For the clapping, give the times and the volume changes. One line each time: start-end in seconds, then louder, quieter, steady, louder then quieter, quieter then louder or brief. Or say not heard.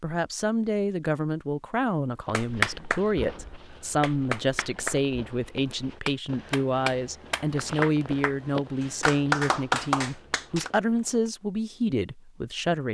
2.3-8.3 louder
9.0-10.7 brief.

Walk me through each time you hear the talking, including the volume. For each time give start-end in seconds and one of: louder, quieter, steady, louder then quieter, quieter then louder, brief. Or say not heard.
0.0-12.8 steady.